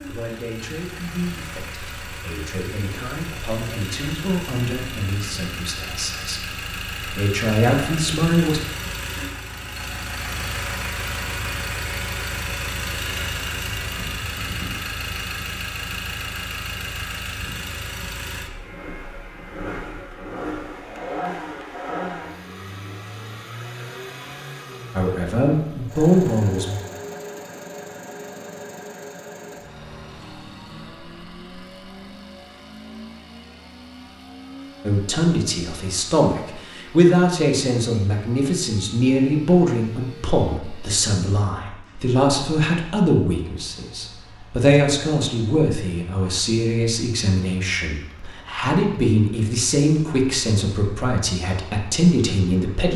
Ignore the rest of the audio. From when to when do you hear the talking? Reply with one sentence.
You can hear the talking from 0.1 to 8.6 s, from 24.9 to 26.8 s and from 34.8 to 52.9 s.